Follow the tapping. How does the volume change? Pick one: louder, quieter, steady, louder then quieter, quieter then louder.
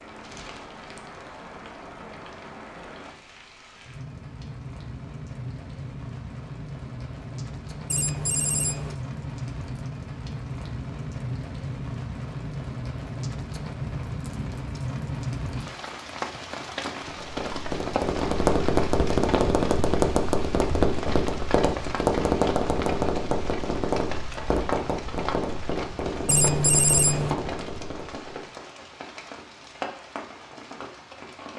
quieter.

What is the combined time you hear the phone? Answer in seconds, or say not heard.
2 s.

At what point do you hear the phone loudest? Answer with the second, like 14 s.
27 s.